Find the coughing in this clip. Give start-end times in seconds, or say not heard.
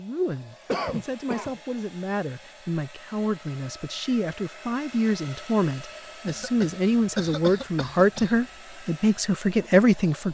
0.7-1.6, 6.2-8.4.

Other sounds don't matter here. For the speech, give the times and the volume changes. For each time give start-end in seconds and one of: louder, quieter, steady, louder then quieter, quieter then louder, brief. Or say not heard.
0.0-10.2 louder.